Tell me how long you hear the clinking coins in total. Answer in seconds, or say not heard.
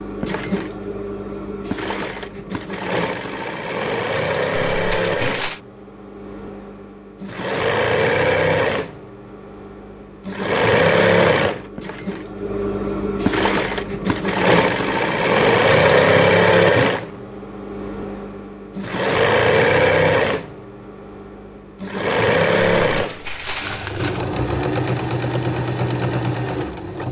2 s.